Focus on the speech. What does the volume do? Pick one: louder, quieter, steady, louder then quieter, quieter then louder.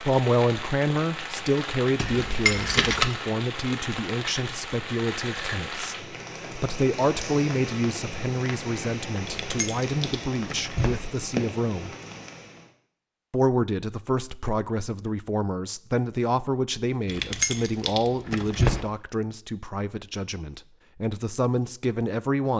steady.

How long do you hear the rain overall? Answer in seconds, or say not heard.
13 s.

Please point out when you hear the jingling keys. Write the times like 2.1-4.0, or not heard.
1.9-3.0, 9.2-11.0, 17.1-18.8.